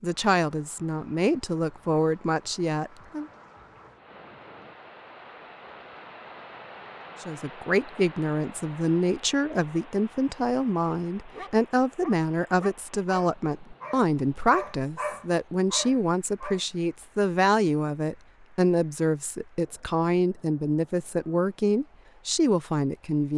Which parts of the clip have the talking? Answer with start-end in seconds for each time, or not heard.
0.0-3.2, 7.2-23.3.